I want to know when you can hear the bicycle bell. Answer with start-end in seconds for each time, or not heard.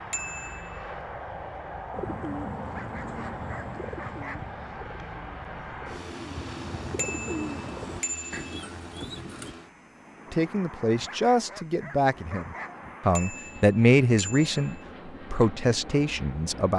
0.1-0.8, 7.0-8.7, 13.2-14.8.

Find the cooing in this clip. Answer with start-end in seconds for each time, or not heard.
1.9-9.6.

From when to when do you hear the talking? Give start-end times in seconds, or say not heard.
10.3-16.7.